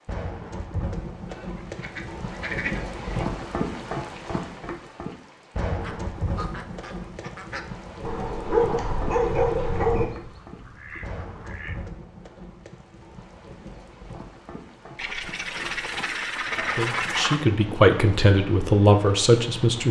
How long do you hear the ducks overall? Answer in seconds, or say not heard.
8 s.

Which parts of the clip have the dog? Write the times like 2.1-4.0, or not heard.
8.1-10.1.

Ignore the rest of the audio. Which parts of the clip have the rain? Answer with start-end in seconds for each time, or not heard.
0.1-19.8.